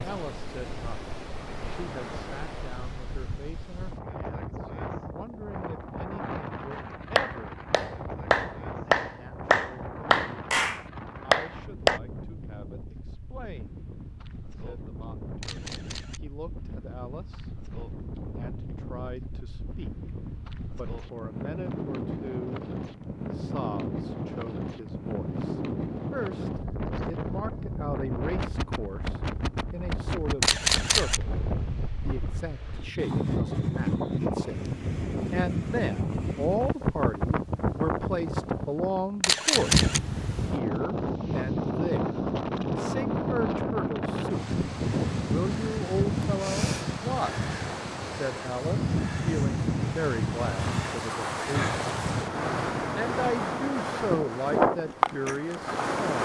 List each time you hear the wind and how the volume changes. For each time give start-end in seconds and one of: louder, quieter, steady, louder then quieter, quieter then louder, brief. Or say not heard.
0.0-56.2 louder.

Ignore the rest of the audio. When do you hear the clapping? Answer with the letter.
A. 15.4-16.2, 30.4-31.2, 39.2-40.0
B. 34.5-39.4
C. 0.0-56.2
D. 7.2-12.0
D.